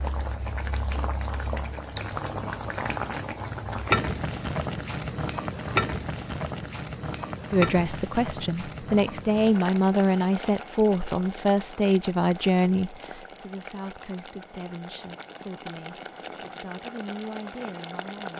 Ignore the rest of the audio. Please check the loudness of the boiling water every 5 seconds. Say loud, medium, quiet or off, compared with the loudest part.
loud, loud, medium, medium.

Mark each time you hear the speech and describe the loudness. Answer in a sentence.
The speech can be heard from 7.5 to 18.3 s, getting quieter.